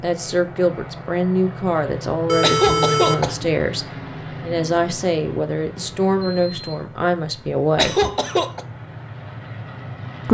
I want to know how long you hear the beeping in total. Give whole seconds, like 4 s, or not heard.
2 s.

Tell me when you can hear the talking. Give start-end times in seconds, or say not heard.
0.0-8.0.